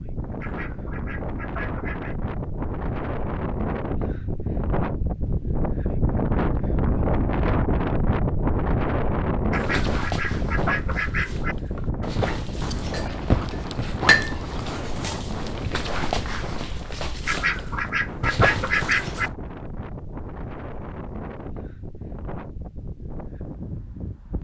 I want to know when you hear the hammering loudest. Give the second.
14 s.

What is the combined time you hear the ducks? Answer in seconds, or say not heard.
6 s.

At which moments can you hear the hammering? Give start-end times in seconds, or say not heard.
12.9-14.3.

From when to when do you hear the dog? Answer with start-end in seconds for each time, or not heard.
9.6-19.4.